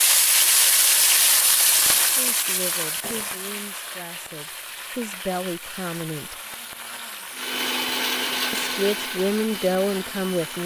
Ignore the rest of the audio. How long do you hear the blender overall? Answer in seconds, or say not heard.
3 s.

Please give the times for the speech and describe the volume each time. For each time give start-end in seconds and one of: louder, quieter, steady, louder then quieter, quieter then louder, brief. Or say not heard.
2.1-6.3 quieter then louder
8.5-10.6 brief.